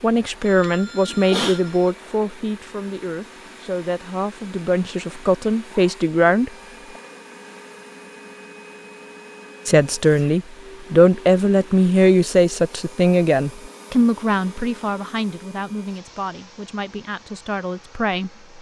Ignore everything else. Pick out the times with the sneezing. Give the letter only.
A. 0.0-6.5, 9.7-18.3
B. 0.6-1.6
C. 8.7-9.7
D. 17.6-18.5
B.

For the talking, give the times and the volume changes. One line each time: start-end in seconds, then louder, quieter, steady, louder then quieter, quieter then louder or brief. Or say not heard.
0.0-6.5 quieter then louder
9.7-18.3 quieter.